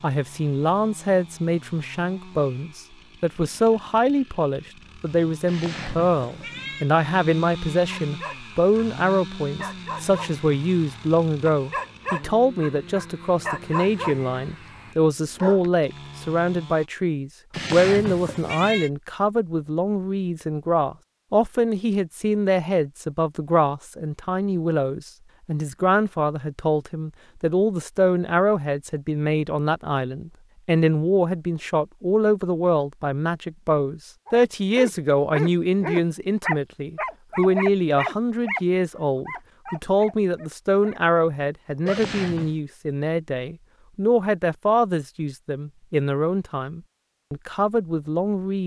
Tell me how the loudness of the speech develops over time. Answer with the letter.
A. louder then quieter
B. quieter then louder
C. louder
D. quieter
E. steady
E.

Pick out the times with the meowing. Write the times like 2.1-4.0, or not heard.
5.5-6.9, 17.5-18.9, 41.9-42.6.